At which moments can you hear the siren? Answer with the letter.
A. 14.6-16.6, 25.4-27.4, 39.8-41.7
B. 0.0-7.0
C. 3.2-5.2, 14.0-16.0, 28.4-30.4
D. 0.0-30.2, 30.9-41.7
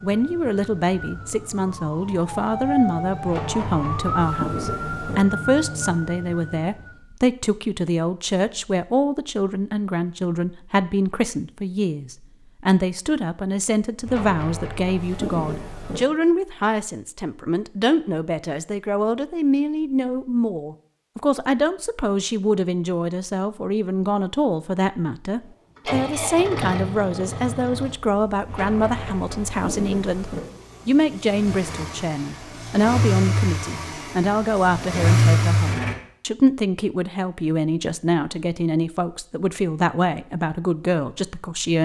B.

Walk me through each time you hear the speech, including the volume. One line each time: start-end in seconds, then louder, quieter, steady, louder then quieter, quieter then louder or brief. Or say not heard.
0.0-30.2 steady
30.9-41.7 steady.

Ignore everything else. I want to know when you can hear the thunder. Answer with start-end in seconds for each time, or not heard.
3.2-5.2, 14.0-16.0, 28.4-30.4.